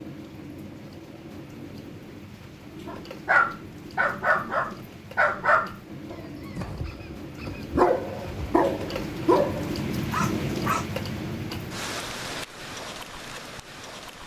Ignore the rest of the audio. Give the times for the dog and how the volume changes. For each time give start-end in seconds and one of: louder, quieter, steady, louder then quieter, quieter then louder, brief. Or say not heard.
2.9-10.8 quieter then louder.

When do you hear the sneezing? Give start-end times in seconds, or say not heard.
not heard.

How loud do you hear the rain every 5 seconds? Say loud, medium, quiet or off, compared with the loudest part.
medium, loud, loud.